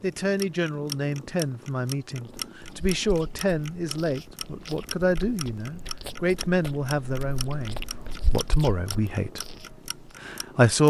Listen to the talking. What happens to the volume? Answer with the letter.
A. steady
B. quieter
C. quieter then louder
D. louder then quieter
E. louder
A.